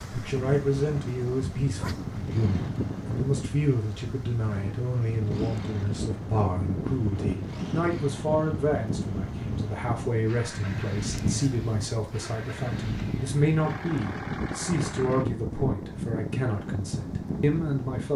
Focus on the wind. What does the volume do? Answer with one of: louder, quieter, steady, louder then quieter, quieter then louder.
steady.